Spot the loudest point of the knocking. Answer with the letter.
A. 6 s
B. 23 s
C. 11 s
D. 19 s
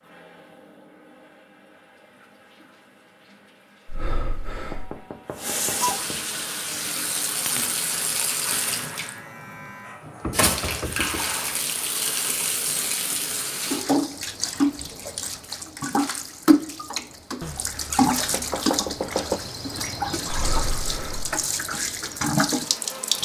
D.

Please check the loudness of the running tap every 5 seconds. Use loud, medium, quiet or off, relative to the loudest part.
quiet, loud, loud, loud, loud.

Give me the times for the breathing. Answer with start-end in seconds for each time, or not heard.
3.9-4.8, 20.2-21.2.